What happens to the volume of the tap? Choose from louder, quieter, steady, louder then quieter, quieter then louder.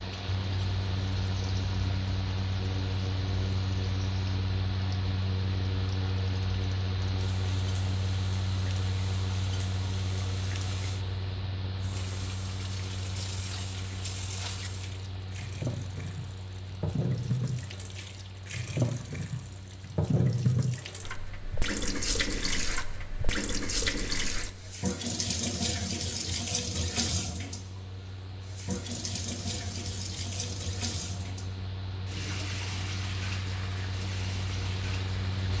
louder then quieter.